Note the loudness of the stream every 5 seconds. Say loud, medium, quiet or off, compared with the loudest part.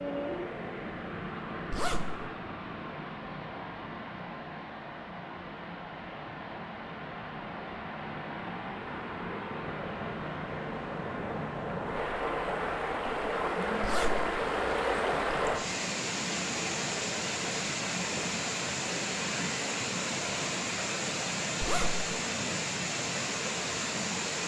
medium, medium, loud, loud, loud.